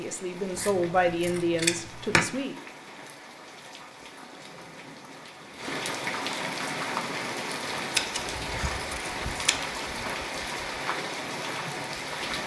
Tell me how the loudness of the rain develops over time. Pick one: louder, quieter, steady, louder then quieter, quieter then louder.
louder.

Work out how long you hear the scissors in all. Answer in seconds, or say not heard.
3 s.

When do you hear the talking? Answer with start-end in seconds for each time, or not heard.
0.0-2.5.